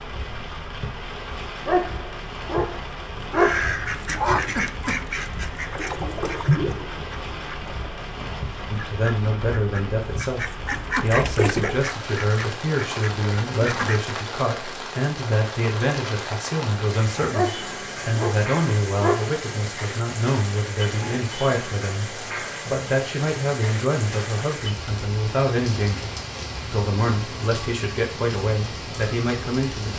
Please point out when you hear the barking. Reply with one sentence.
The barking can be heard from 1.6 to 3.9 s and from 17.3 to 19.4 s.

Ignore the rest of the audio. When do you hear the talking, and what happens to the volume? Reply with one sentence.
The talking can be heard from 8.7 to 29.9 s, at a steady volume.